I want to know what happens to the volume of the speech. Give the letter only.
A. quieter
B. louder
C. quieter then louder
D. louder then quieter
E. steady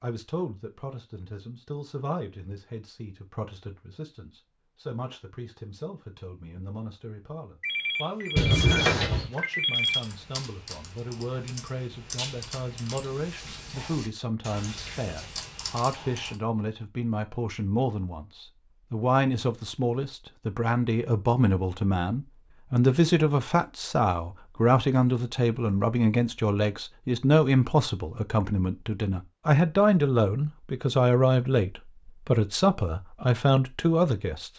B.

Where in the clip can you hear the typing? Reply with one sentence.
You can hear the typing from 9.8 to 16.4 s.